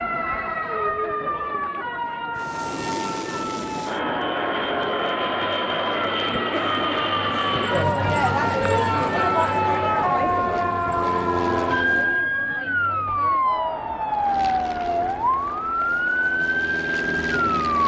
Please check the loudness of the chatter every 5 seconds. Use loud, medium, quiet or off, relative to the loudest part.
medium, loud, medium, quiet.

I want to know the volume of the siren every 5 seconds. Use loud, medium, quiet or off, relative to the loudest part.
medium, loud, loud, loud.